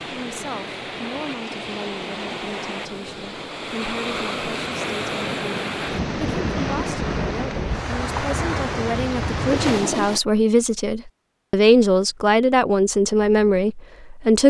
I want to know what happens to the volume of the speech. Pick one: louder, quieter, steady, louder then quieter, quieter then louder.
louder.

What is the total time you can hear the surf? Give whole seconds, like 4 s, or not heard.
10 s.